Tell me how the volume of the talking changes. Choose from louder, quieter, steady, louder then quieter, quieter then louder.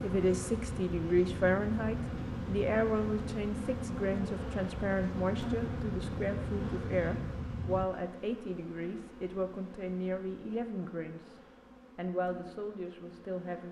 quieter.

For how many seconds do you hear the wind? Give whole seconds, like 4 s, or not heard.
8 s.